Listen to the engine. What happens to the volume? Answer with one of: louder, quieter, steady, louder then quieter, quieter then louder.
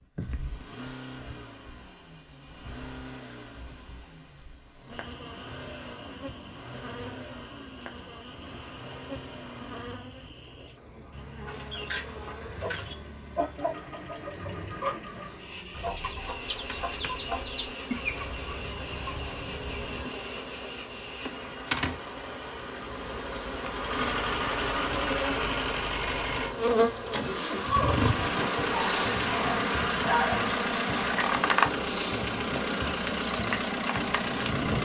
louder.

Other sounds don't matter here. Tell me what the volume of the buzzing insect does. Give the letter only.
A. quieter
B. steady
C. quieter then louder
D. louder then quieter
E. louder
E.